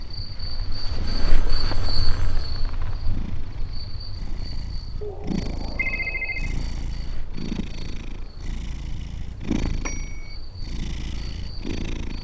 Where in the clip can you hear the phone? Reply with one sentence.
The phone can be heard from 0.5 to 2.4 s, from 5.0 to 6.5 s and from 9.8 to 10.3 s.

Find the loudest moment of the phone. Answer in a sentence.
The volume of the phone peaks at 6 seconds.